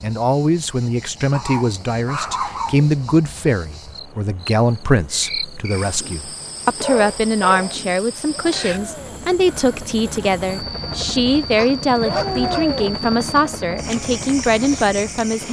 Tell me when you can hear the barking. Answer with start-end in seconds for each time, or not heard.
1.3-3.1, 6.8-7.8, 11.6-12.7.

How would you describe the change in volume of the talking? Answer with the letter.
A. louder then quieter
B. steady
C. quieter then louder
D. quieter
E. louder
B.